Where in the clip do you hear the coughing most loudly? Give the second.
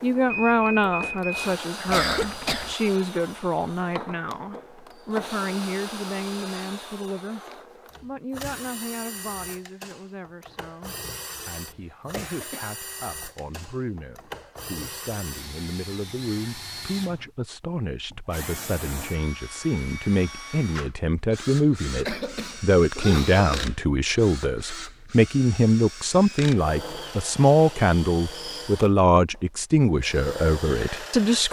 2 s.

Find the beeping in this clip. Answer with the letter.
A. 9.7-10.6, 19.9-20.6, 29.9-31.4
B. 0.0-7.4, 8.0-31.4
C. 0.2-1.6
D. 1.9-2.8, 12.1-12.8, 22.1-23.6
C.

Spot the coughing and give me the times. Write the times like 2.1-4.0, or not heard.
1.9-2.8, 12.1-12.8, 22.1-23.6.